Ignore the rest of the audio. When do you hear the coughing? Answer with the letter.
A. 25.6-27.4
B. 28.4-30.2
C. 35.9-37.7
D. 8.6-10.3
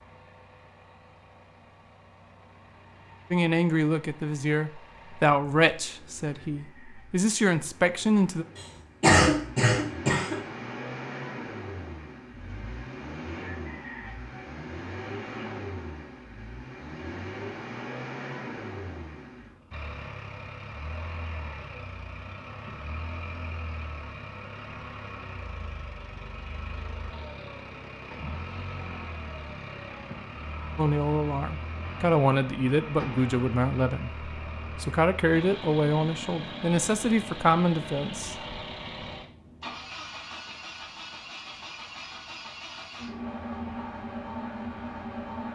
D.